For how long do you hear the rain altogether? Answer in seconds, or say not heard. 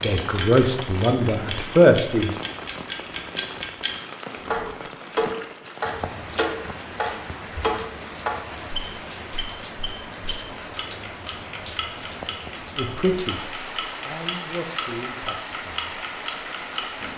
17 s.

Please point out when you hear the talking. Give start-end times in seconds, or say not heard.
0.0-2.4, 12.8-13.4, 14.1-15.9.